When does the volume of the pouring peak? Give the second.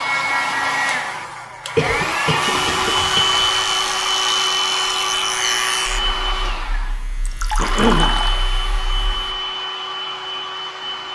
8 s.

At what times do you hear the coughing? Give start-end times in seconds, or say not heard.
1.8-3.3, 7.5-8.2.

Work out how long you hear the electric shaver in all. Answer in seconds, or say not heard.
7 s.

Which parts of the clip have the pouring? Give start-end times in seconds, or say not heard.
2.5-3.6, 7.2-8.4.